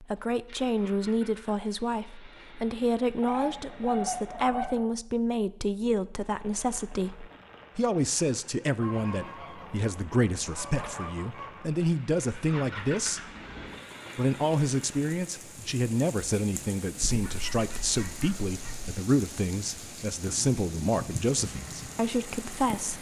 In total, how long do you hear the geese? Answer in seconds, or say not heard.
6 s.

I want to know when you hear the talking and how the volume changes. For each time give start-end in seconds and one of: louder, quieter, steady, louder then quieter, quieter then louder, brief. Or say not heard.
0.0-13.2 steady
14.2-22.9 steady.